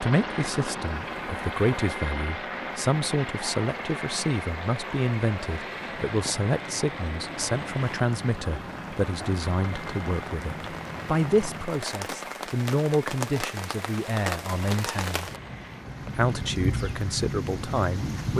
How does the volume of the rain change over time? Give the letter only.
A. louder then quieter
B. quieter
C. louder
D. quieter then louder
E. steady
C.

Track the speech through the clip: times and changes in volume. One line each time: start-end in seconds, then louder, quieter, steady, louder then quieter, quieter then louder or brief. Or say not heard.
0.0-15.3 steady
16.1-18.3 brief.